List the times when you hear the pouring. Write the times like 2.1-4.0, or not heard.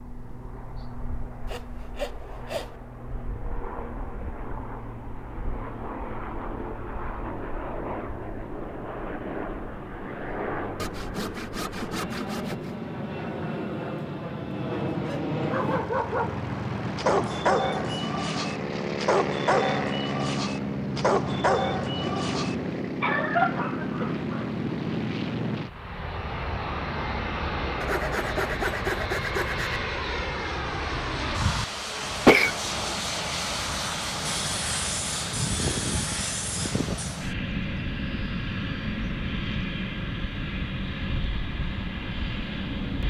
not heard.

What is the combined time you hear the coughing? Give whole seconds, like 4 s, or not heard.
2 s.